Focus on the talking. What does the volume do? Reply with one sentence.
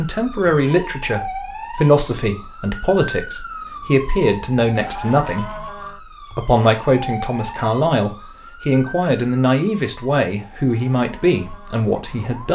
The volume of the talking stays about the same.